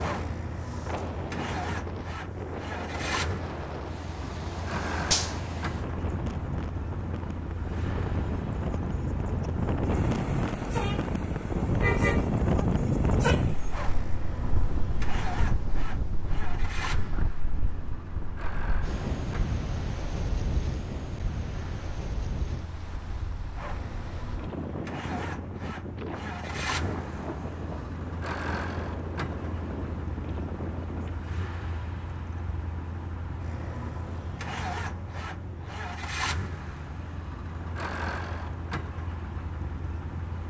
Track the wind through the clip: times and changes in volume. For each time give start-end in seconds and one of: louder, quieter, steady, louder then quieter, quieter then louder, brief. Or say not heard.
0.0-31.2 louder then quieter.